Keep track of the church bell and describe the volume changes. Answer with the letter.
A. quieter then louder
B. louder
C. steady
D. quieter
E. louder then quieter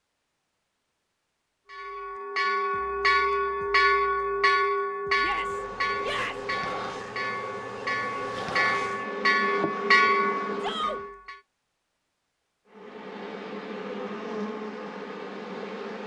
A.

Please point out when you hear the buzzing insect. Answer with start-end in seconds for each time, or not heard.
5.2-11.1, 12.7-16.0.